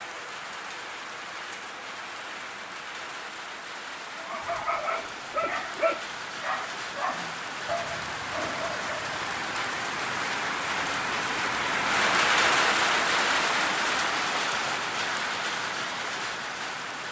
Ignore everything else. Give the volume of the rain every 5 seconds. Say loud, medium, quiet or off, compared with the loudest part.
quiet, medium, loud, medium.